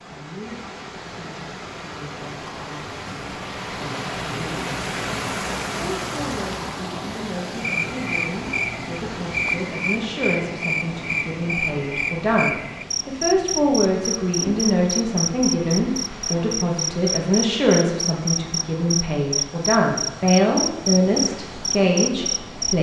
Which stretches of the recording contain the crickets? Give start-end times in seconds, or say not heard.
7.5-22.7.